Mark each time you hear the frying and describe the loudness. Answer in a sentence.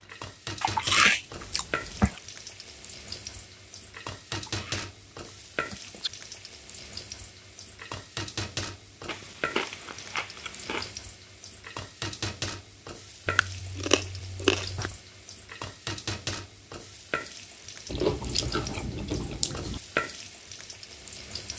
The frying can be heard from 0.0 to 21.5 s, at a steady volume.